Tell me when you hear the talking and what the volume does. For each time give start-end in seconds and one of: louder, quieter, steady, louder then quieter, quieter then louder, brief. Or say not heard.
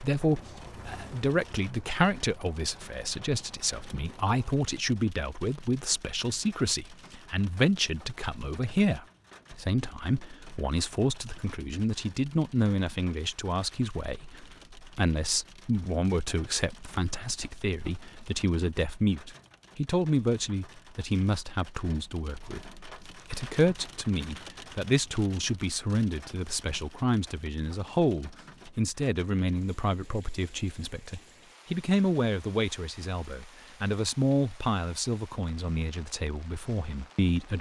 0.0-37.5 steady.